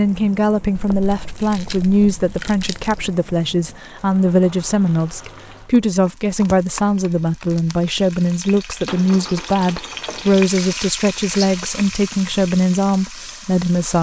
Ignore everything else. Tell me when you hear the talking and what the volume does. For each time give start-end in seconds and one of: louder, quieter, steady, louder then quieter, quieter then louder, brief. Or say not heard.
0.0-13.9 steady.